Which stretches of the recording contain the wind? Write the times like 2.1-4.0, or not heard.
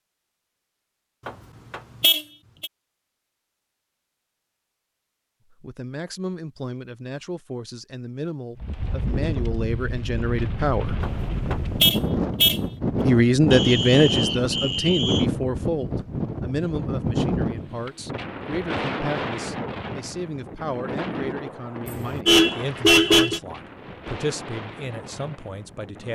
8.6-26.1.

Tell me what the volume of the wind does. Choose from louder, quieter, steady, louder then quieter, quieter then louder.
quieter.